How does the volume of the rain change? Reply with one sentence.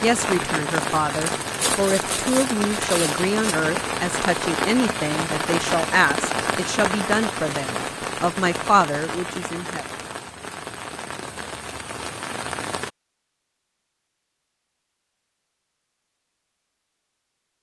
The volume of the rain goes down.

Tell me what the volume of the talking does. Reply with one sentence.
The volume of the talking stays about the same.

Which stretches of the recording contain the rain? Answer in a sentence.
You can hear the rain from 0.0 to 12.9 s.